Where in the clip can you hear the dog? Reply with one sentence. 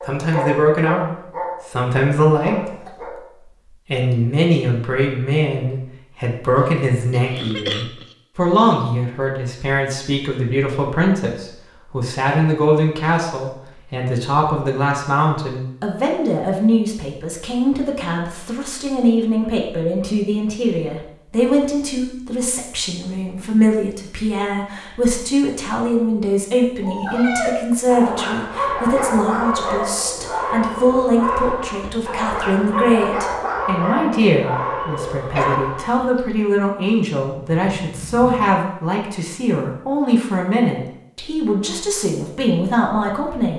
The dog can be heard from 0.0 to 3.2 s and from 26.8 to 36.2 s.